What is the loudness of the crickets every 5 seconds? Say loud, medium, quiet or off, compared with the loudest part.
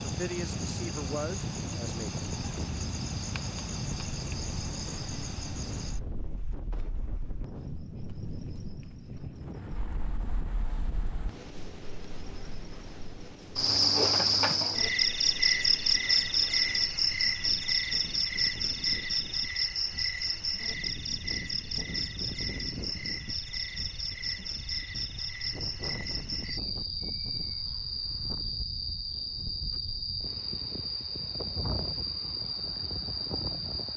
medium, quiet, loud, loud, medium, medium, medium.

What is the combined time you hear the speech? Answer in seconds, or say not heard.
2 s.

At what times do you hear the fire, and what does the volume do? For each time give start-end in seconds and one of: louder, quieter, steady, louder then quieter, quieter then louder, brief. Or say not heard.
not heard.